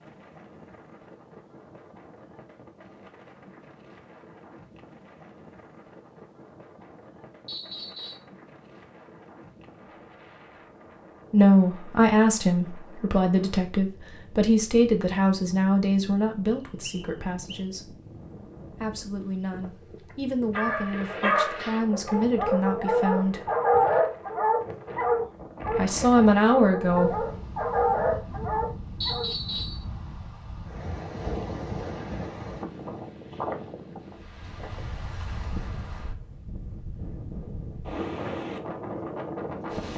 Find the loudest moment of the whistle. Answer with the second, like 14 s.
29 s.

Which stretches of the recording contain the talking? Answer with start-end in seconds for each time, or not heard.
11.3-17.9, 18.7-23.4, 25.7-27.2.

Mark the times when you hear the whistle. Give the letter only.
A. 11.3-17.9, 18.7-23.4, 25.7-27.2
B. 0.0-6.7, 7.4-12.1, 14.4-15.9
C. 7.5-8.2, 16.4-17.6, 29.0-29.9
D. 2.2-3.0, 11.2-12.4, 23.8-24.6
C.